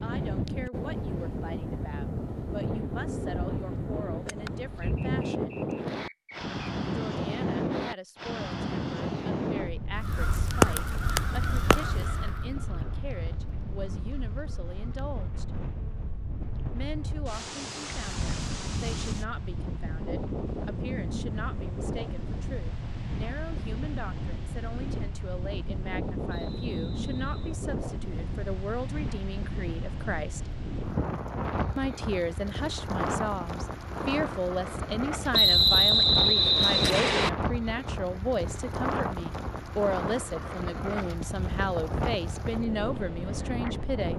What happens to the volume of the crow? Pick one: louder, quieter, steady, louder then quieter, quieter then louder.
quieter.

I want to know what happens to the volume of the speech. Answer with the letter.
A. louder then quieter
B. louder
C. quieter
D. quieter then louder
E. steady
B.